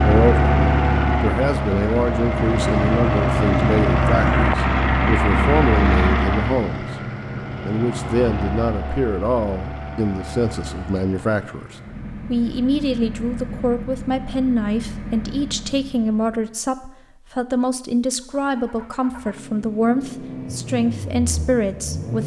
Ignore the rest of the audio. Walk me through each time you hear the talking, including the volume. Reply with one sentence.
You can hear the talking briefly from 0.0 to 0.5 s; and from 1.2 to 22.2 s, at a steady volume.